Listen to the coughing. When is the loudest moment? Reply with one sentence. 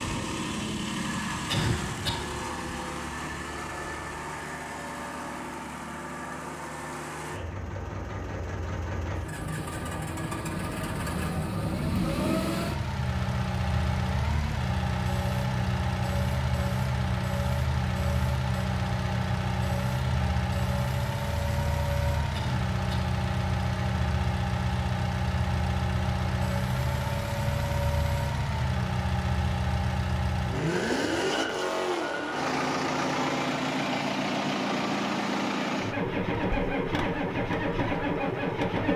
The loudest moment of the coughing is at 2 seconds.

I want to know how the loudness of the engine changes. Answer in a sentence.
The volume of the engine goes up.